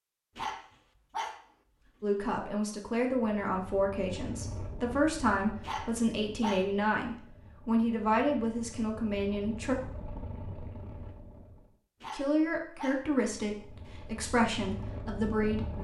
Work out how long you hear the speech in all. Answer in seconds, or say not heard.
11 s.